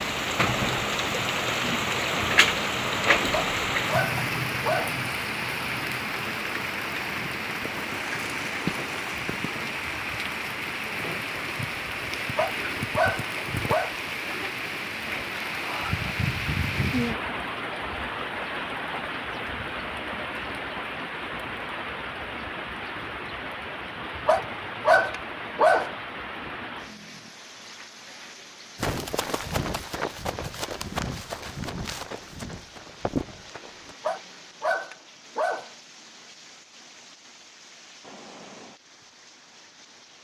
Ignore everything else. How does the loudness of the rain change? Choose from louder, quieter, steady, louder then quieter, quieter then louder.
quieter.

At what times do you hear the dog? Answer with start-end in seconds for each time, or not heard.
3.3-5.0, 12.3-13.9, 24.2-25.9, 34.0-35.7.